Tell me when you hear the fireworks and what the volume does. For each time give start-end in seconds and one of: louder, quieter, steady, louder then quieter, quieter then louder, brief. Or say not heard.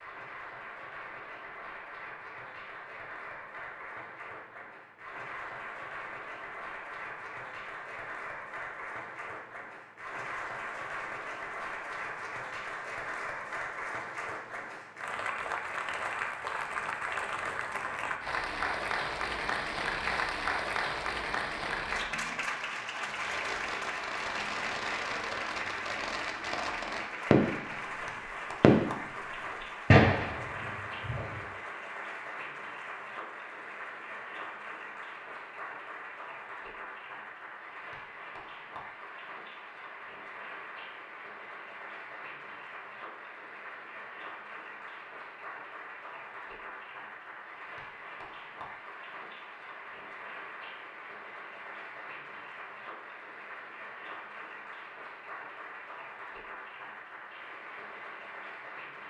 23.1-31.4 louder.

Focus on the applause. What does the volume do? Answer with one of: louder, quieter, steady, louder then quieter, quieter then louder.
louder then quieter.